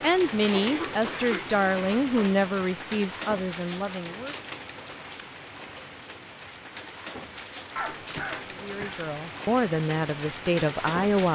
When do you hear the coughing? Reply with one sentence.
The coughing can be heard from 0.4 to 2.4 s and from 7.8 to 9.1 s.